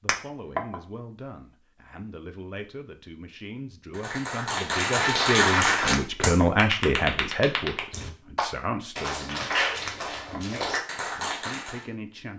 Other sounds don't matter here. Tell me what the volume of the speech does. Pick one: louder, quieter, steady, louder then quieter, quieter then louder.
louder then quieter.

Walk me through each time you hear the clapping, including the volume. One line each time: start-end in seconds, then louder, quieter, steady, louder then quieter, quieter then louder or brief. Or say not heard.
3.9-11.8 quieter.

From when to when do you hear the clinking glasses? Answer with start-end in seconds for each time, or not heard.
0.1-0.6, 5.9-6.5, 9.8-10.4.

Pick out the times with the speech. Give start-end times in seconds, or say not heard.
0.0-12.3.